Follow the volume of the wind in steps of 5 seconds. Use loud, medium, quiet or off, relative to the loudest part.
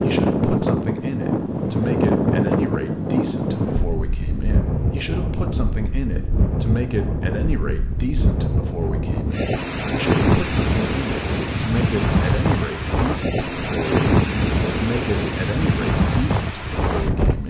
loud, medium, loud, loud.